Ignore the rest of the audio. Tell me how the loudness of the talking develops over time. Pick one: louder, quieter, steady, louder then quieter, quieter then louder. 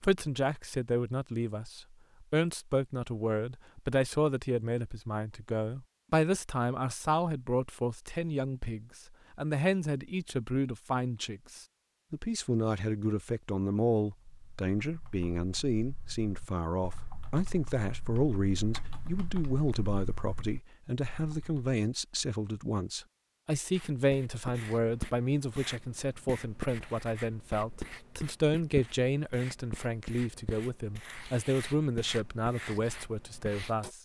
steady.